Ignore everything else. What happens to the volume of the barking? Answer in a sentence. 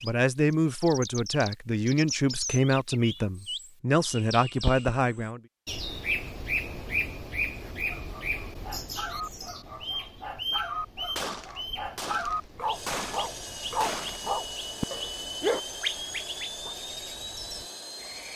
The volume of the barking goes up.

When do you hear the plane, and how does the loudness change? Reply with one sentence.
You can hear the plane from 12.7 to 18.3 s, at a steady volume.